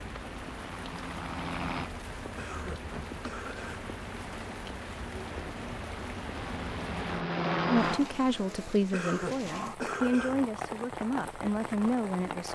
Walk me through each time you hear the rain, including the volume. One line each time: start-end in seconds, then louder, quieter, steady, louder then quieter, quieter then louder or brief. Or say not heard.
0.0-12.5 steady.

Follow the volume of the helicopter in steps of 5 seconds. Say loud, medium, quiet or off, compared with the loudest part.
medium, loud, off.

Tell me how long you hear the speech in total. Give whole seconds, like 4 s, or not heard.
5 s.